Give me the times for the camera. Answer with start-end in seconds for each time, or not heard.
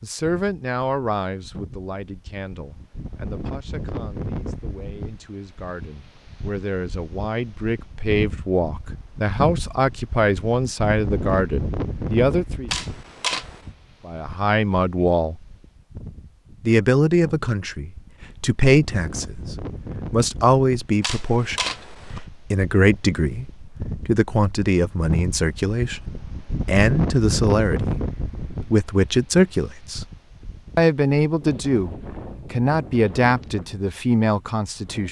12.7-13.6, 21.0-22.2.